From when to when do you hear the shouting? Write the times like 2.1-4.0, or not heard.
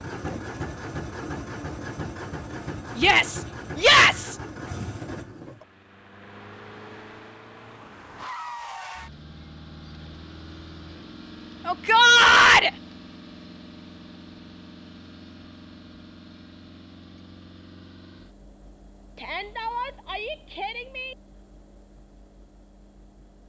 3.0-4.3, 11.7-12.7, 19.1-21.1.